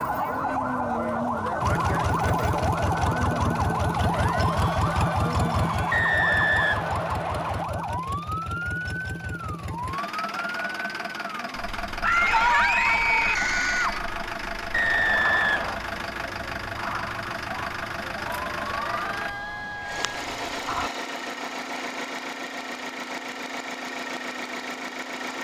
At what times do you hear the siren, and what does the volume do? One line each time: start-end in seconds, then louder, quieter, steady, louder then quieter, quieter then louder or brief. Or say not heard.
0.0-20.9 quieter.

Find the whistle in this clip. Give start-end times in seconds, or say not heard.
5.9-7.7, 14.7-15.8.